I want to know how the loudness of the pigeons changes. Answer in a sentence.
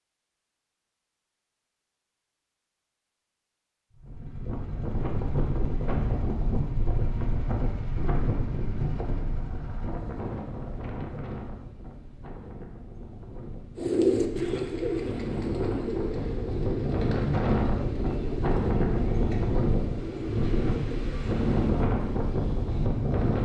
The volume of the pigeons goes down.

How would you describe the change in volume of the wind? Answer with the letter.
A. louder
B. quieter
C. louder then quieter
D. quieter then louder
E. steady
D.